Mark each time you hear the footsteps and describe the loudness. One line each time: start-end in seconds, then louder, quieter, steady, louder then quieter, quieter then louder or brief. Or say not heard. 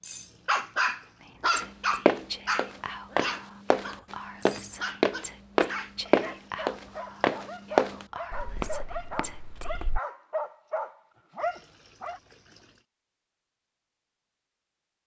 1.6-10.0 quieter.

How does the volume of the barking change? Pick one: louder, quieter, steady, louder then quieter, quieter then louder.
quieter then louder.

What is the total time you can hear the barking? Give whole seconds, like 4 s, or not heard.
12 s.